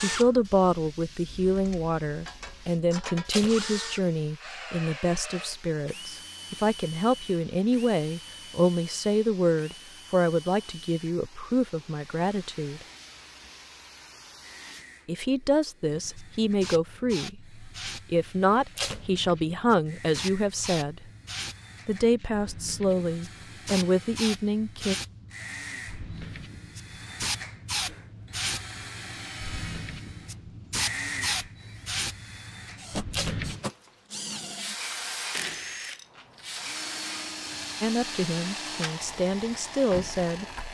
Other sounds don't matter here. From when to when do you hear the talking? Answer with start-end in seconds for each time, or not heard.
0.0-12.8, 15.1-21.1, 21.9-24.9, 37.8-40.5.